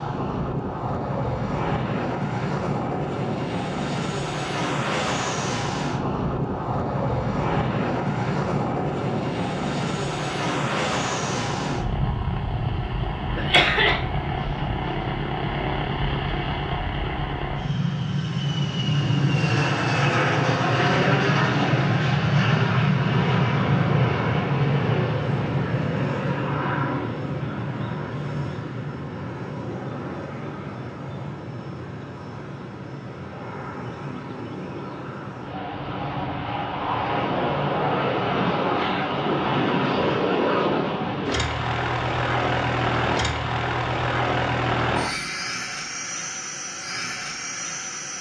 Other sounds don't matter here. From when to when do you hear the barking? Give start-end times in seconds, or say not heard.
not heard.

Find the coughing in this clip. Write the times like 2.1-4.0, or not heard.
13.3-14.0.